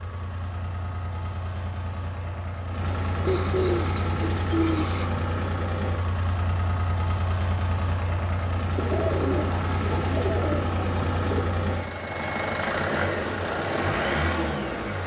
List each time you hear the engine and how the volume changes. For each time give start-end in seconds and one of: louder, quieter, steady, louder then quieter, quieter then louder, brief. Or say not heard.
0.0-15.0 louder.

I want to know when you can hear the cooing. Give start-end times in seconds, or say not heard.
3.2-5.1, 8.8-11.4.